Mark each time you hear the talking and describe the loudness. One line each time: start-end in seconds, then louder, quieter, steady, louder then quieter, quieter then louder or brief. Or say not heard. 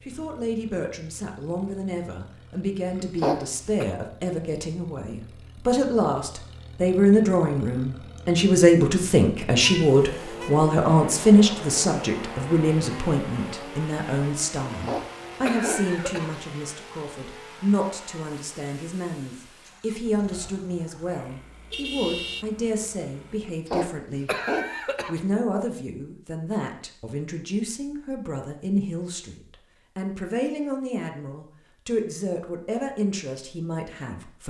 0.1-24.3 louder then quieter
25.1-34.4 steady.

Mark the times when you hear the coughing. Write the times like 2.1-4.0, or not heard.
2.9-3.9, 14.7-16.4, 23.4-25.2.